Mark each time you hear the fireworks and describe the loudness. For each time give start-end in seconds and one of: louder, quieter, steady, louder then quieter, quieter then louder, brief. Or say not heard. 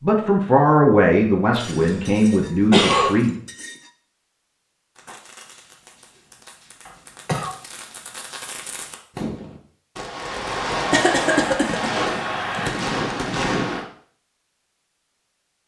5.0-13.8 louder.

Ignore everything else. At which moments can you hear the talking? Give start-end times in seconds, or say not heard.
0.0-3.4.